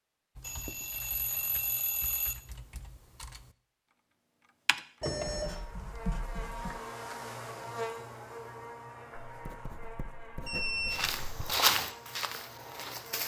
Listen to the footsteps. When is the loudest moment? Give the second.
12 s.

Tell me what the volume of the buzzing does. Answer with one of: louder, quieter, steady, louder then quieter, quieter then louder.
quieter.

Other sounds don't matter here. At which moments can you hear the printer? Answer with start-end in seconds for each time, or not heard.
not heard.